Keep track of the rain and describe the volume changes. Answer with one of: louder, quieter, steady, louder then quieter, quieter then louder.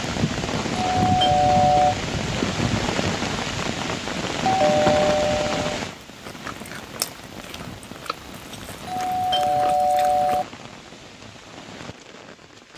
quieter.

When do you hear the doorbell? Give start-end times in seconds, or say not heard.
1.0-1.9, 4.5-5.8, 8.8-10.4.